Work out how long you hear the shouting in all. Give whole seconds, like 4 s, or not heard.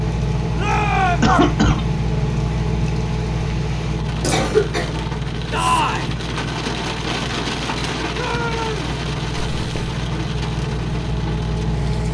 2 s.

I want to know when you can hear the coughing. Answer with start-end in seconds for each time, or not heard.
1.2-1.9, 4.2-5.0, 9.4-9.9.